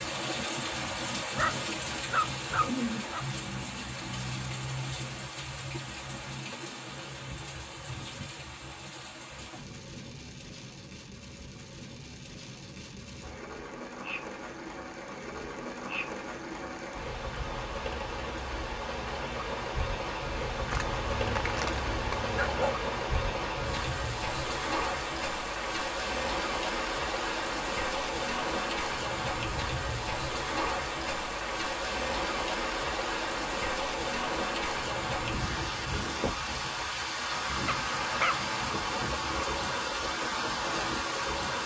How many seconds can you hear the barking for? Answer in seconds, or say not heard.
5 s.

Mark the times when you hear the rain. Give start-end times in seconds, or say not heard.
0.0-41.6.